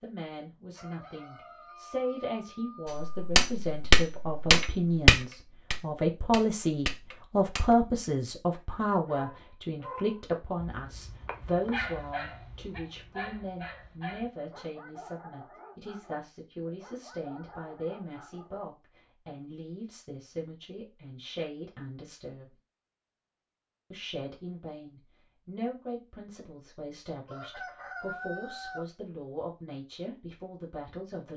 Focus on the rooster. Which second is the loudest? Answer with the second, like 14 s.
28 s.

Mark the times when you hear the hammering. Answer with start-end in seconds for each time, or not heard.
2.9-7.8.